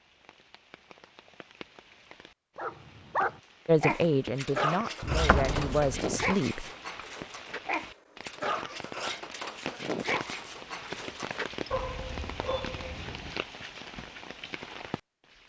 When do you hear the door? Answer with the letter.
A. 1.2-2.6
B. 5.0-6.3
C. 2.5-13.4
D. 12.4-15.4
B.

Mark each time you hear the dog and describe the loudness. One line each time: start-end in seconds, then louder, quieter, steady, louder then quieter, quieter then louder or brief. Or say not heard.
2.5-13.4 quieter.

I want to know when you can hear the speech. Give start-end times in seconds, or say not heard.
3.6-6.7.